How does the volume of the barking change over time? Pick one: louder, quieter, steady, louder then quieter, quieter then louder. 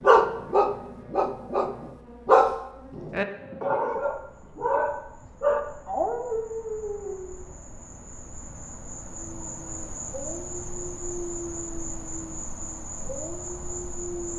quieter.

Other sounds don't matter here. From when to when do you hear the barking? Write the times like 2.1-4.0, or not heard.
0.0-7.4, 9.2-14.3.